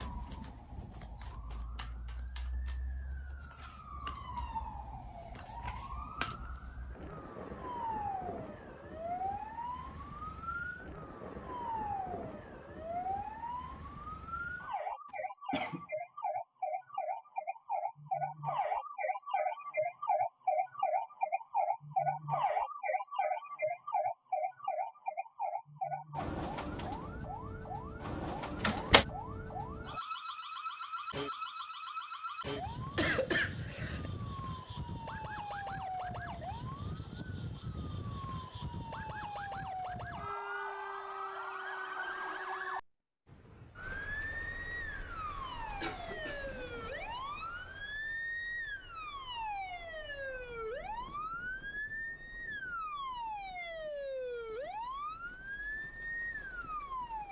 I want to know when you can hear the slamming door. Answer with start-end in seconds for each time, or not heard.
28.6-29.1.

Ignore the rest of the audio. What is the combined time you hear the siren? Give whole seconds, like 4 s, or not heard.
57 s.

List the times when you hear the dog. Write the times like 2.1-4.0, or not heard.
not heard.